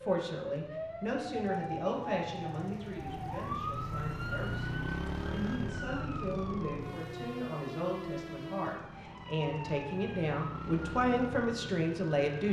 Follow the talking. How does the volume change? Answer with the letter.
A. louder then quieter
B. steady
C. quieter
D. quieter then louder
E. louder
D.